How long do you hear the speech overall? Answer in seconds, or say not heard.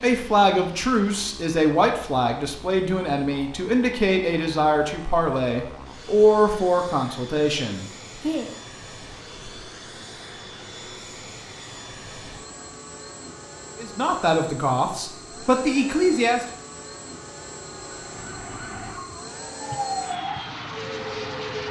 11 s.